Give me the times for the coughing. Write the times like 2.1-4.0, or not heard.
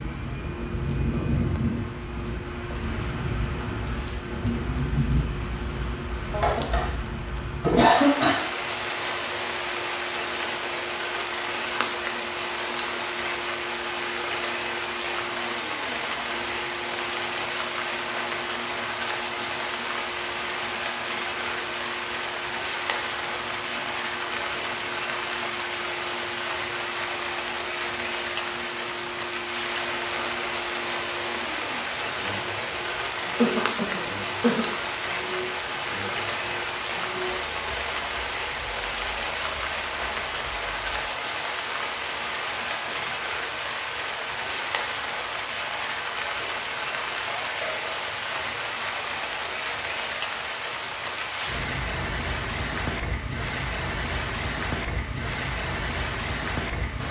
6.3-7.0, 7.6-8.3, 33.4-34.6, 47.3-47.9.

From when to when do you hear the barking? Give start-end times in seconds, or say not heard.
not heard.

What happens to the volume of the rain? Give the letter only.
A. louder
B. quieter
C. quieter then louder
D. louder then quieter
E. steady
E.